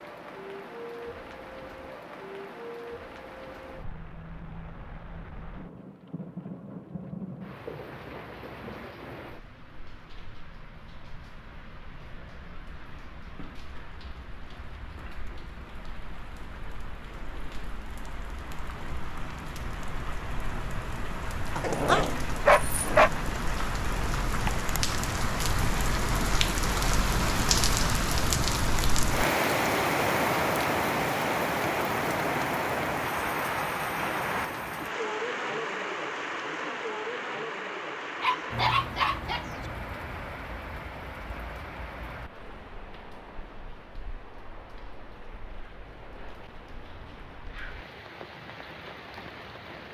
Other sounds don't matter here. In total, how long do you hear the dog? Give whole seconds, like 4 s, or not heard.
3 s.